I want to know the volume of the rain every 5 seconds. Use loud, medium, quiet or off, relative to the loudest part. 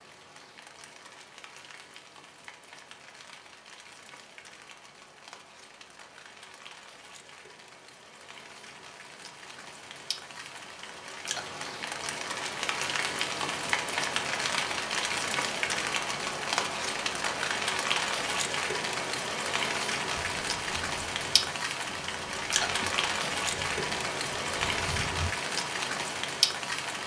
quiet, quiet, loud, loud, loud, loud.